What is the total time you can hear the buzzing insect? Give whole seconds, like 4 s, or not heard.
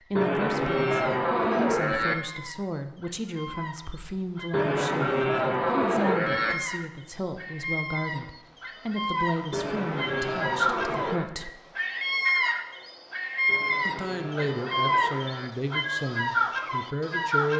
not heard.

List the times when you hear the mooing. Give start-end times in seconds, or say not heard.
0.1-2.1, 4.5-6.5, 9.5-11.3, 13.4-15.5.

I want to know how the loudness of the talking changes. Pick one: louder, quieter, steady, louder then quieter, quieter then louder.
steady.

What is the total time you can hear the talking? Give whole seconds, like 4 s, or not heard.
15 s.